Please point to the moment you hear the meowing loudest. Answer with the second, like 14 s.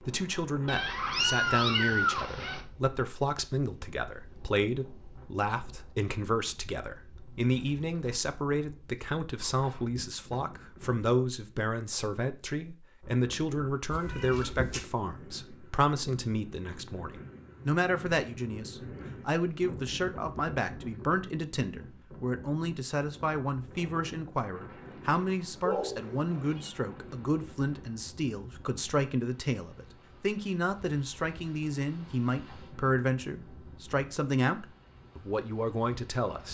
2 s.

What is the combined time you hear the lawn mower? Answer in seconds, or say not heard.
not heard.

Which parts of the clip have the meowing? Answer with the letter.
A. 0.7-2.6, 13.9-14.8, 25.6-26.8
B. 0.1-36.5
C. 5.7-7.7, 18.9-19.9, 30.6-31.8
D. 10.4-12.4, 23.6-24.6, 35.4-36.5
A.